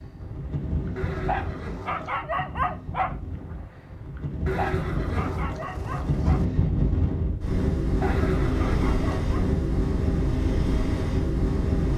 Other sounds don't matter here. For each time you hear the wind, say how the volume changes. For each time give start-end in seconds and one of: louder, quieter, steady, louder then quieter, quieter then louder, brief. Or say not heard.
0.0-11.9 louder.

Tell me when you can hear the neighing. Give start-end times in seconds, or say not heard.
0.9-2.2, 4.5-6.5, 8.0-9.2.